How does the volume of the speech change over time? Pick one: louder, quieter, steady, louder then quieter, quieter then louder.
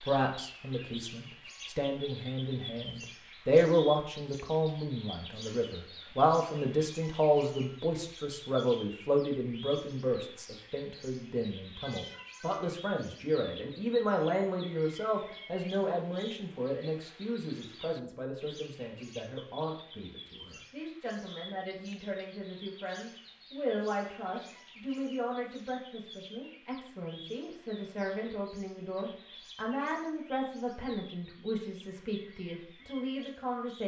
quieter.